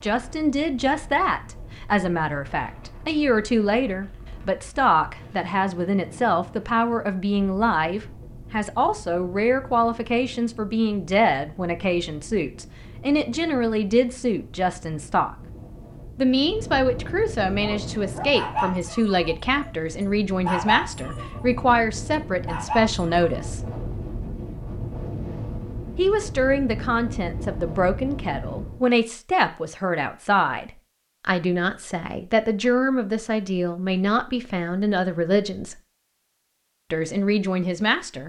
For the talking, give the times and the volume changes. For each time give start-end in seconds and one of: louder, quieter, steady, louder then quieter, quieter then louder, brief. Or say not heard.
0.0-15.3 steady
16.1-23.6 steady
25.9-35.8 steady
36.9-38.2 brief.